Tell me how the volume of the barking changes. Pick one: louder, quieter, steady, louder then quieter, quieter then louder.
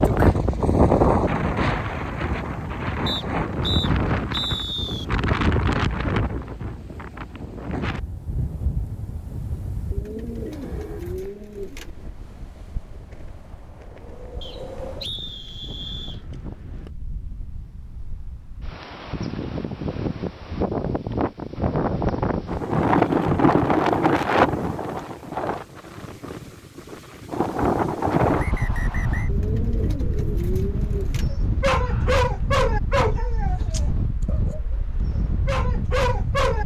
quieter then louder.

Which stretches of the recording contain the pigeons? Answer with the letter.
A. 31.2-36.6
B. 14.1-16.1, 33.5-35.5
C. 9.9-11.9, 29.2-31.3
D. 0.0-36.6
C.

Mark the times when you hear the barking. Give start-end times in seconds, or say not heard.
31.2-36.6.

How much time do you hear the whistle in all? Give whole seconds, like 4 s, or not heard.
5 s.